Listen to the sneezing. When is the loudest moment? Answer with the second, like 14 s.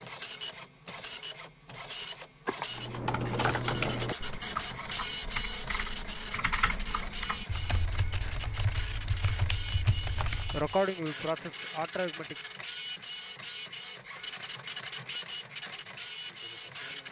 11 s.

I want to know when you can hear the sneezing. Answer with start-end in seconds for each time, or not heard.
2.5-3.3, 10.5-12.3.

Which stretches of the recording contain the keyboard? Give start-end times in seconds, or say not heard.
2.7-10.8.